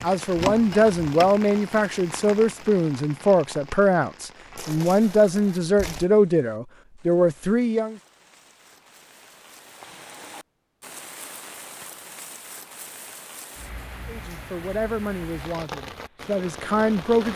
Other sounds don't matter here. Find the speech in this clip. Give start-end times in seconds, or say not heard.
0.0-8.0, 14.1-17.3.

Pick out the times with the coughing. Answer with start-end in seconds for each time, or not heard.
not heard.